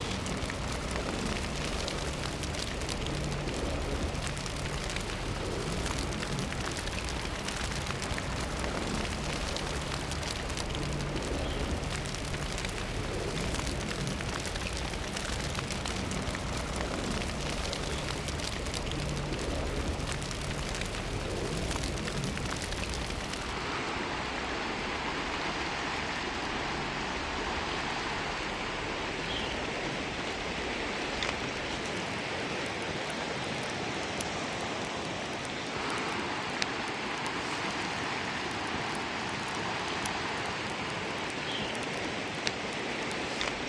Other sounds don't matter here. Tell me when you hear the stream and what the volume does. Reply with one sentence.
You can hear the stream from 0.0 to 43.6 s, getting louder.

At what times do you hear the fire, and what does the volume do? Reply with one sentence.
You can hear the fire from 0.0 to 43.6 s, getting quieter.